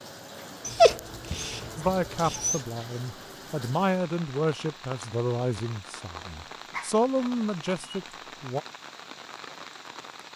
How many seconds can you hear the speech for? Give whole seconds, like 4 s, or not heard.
7 s.